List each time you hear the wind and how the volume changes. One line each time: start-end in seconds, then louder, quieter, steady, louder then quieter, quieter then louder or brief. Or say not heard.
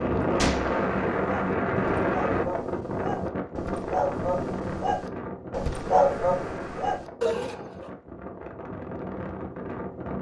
0.0-10.1 quieter.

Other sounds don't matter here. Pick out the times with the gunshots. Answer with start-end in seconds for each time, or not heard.
0.3-0.8.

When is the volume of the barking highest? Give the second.
6 s.